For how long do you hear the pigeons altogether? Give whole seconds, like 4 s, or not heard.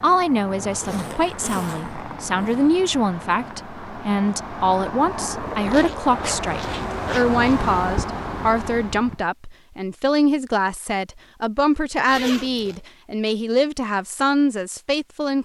not heard.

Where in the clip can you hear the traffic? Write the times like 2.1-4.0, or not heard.
0.0-9.2.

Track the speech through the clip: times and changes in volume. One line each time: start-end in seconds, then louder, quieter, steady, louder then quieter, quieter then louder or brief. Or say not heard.
0.0-15.4 steady.